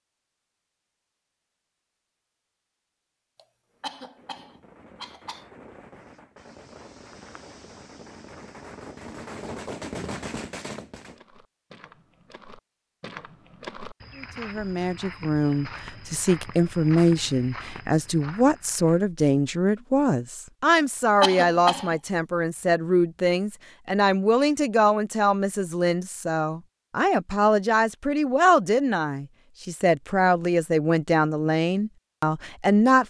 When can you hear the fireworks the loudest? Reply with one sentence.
The loudest moment of the fireworks is at 10 seconds.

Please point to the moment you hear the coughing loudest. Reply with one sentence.
The volume of the coughing peaks at 21 seconds.